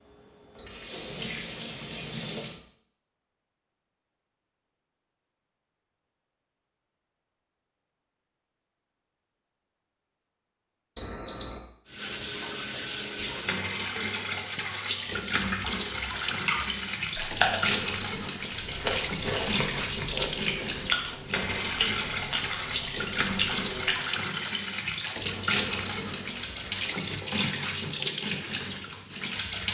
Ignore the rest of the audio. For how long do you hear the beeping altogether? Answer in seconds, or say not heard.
5 s.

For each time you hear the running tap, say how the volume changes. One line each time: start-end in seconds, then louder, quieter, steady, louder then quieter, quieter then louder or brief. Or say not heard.
0.0-2.6 brief
11.8-29.6 steady.